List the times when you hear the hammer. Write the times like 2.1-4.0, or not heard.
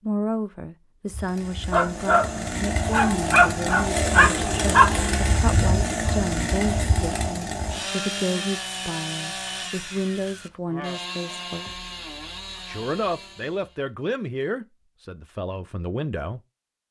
not heard.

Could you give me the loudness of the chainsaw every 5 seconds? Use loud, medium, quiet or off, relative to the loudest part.
loud, loud, medium, off.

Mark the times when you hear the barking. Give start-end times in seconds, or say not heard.
1.1-7.7.